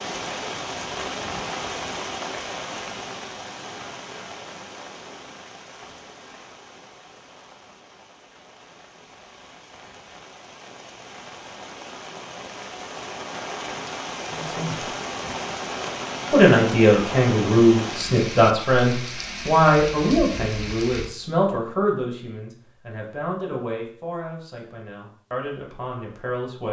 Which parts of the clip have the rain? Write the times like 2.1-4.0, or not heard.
0.0-21.1.